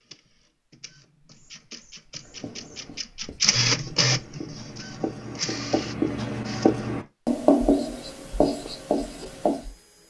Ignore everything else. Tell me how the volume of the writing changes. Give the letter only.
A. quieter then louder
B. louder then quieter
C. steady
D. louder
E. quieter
B.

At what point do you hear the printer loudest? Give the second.
4 s.